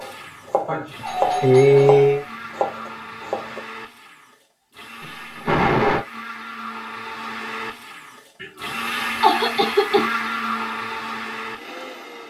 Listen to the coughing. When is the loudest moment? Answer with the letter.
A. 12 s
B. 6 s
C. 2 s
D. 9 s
C.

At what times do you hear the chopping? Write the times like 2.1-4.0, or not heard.
0.0-3.6.